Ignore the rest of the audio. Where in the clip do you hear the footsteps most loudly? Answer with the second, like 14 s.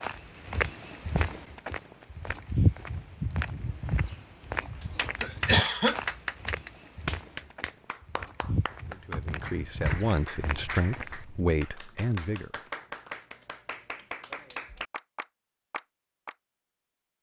3 s.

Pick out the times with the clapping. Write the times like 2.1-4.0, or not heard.
4.8-16.4.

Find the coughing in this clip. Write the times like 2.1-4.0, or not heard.
5.2-6.0.